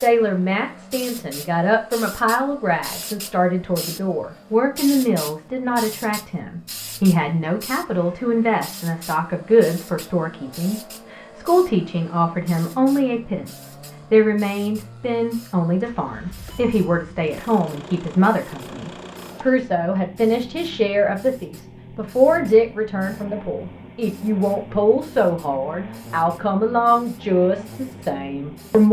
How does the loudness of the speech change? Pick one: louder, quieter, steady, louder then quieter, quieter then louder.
steady.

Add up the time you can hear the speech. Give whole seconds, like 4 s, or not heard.
29 s.